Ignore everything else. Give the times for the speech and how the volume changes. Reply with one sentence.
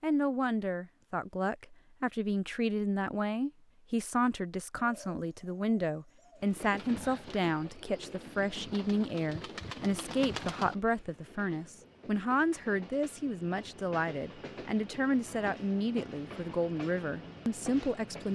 The speech can be heard from 0.0 to 18.3 s, at a steady volume.